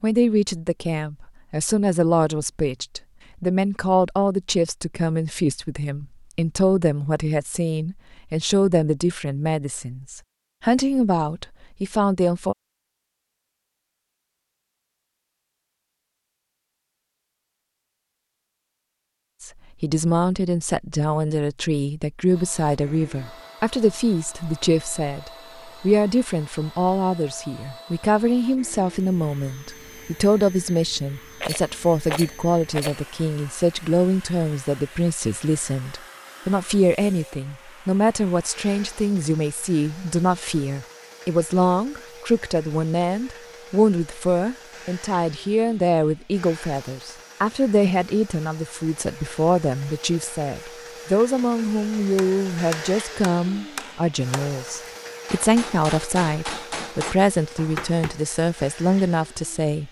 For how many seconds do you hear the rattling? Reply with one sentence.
You can hear the rattling for 2 seconds altogether.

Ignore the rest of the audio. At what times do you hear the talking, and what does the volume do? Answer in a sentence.
The talking can be heard from 0.0 to 12.6 s, at a steady volume; and from 19.4 to 59.8 s, at a steady volume.